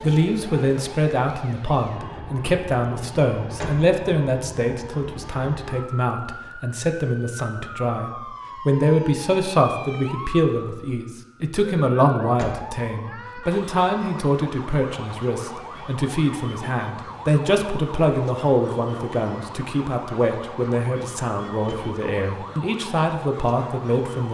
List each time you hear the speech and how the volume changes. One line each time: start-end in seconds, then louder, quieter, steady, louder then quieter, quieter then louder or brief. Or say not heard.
0.0-24.3 steady.